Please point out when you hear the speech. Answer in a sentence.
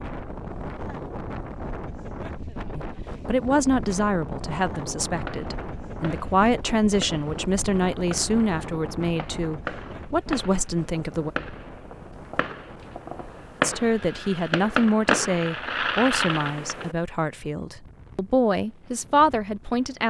The speech can be heard from 2.7 to 11.3 s and from 13.6 to 20.0 s.